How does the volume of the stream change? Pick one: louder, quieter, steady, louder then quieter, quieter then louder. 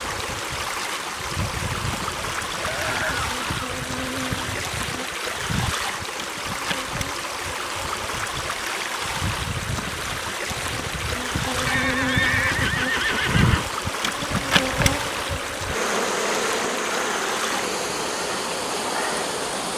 steady.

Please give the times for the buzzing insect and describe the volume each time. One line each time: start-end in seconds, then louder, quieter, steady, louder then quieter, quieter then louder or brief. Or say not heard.
0.0-19.7 louder.